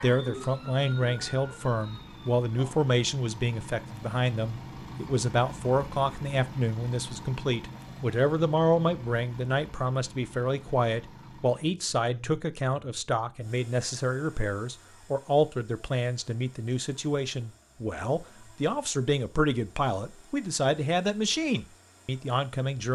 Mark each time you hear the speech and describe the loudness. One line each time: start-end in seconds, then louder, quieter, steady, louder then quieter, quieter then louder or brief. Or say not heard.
0.0-22.8 steady.